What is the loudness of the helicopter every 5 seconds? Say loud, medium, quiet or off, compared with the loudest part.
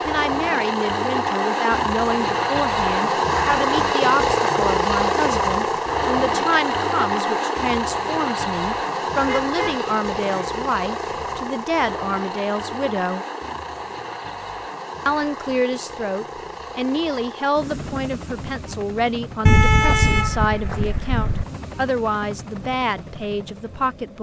loud, loud, medium, quiet, quiet.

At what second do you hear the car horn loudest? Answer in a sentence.
The loudest moment of the car horn is at 20 seconds.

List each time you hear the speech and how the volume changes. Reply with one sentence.
You can hear the speech from 0.1 to 13.2 s, at a steady volume; and from 15.1 to 24.1 s, at a steady volume.